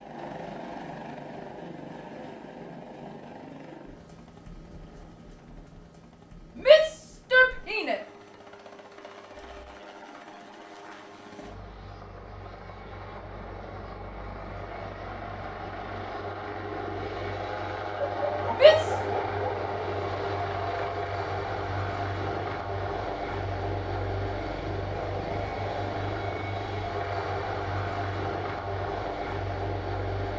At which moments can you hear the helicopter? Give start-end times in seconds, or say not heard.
0.0-30.3.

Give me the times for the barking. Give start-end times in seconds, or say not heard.
17.9-19.4.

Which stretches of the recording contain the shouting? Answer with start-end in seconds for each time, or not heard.
6.5-8.0, 18.5-19.0.